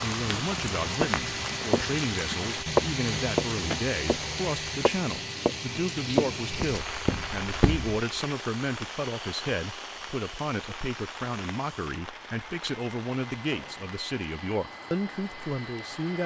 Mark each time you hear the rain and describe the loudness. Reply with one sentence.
You can hear the rain from 0.0 to 16.2 s, getting quieter.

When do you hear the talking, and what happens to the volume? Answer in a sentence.
The talking can be heard from 0.0 to 16.2 s, at a steady volume.